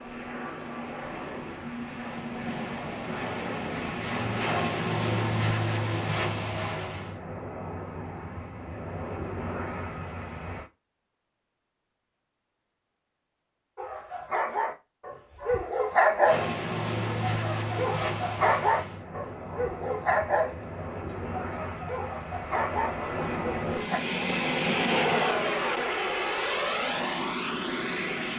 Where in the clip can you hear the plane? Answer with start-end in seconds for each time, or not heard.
0.0-10.7, 16.2-28.3.